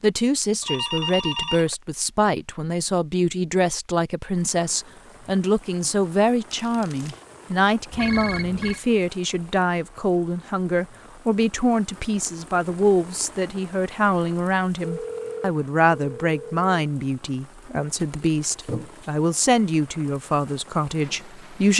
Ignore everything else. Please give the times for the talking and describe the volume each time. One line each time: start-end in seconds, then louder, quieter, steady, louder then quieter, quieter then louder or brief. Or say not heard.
0.0-21.7 steady.